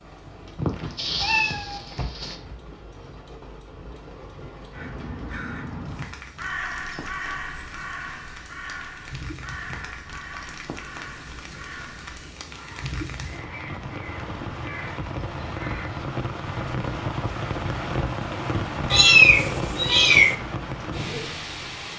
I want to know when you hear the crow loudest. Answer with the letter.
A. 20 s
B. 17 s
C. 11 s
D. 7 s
D.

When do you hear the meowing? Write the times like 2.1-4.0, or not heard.
0.6-2.4, 18.9-20.4.